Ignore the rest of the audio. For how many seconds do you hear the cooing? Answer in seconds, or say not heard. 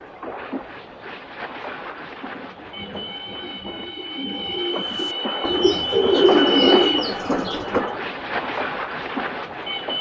6 s.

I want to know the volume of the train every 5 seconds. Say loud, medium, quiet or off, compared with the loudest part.
medium, loud.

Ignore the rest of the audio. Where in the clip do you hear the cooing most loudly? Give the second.
6 s.